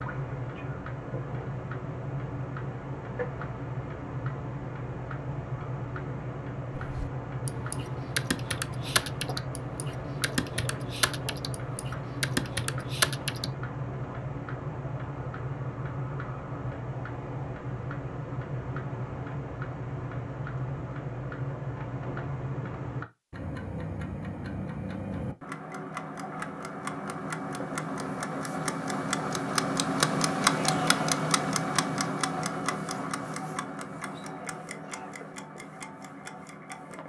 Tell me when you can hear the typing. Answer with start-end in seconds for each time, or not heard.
6.8-13.4.